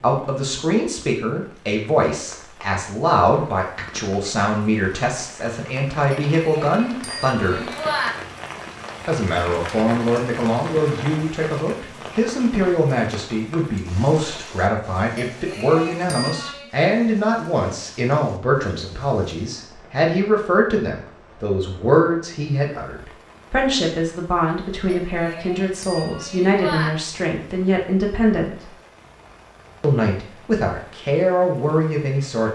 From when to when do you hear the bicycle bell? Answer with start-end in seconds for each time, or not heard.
6.1-8.1, 15.2-16.7, 24.9-26.9.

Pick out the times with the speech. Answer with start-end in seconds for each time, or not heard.
0.0-7.6, 9.1-28.6, 29.8-32.5.